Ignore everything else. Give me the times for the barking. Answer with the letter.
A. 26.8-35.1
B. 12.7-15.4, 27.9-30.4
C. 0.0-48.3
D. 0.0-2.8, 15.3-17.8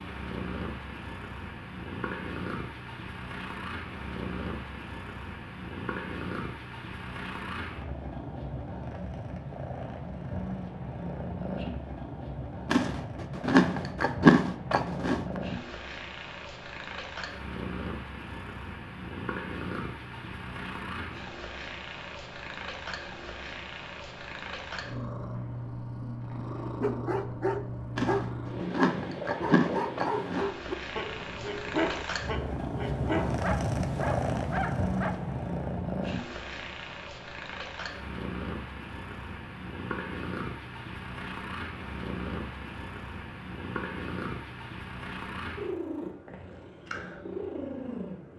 A.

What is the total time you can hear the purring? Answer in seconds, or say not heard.
48 s.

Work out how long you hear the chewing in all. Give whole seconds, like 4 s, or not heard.
5 s.